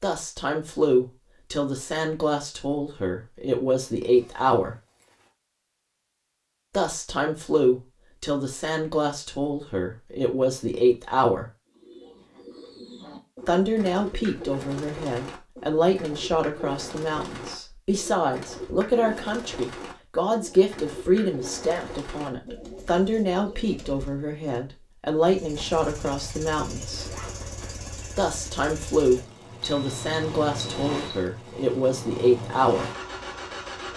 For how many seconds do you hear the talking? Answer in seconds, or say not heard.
28 s.